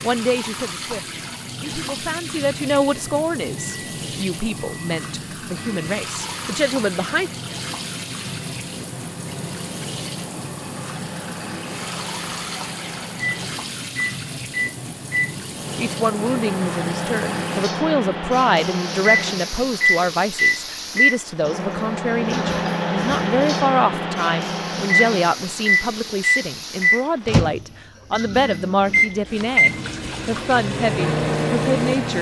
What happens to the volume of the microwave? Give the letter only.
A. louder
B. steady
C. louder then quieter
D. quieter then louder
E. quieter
A.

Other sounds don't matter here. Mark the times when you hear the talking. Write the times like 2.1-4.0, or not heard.
0.0-7.3, 15.8-32.1.